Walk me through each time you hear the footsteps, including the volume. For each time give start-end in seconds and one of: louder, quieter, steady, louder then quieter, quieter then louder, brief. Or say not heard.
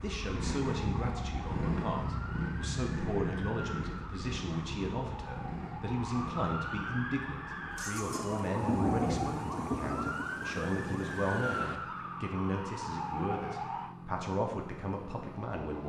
not heard.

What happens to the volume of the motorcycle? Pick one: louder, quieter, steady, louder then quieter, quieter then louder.
quieter.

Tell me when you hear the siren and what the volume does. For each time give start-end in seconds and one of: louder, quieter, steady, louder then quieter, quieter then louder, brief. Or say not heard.
0.0-13.9 louder.